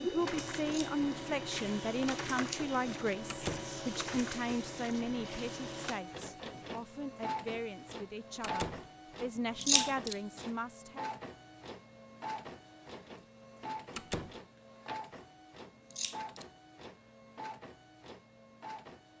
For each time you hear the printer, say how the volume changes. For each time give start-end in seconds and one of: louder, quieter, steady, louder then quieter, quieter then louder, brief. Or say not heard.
0.0-19.1 quieter.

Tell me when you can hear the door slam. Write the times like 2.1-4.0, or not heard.
3.2-3.8, 8.4-8.8, 13.9-14.4.